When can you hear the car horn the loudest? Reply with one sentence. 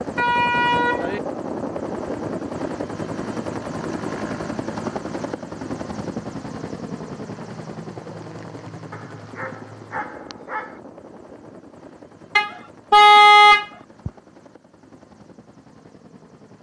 The loudest moment of the car horn is at 13 seconds.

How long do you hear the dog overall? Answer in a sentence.
You can hear the dog for 2 seconds altogether.